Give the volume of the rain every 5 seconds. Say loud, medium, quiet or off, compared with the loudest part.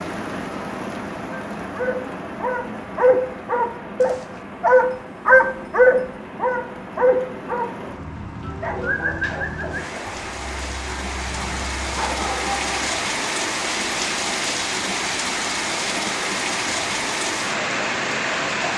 medium, medium, loud, loud.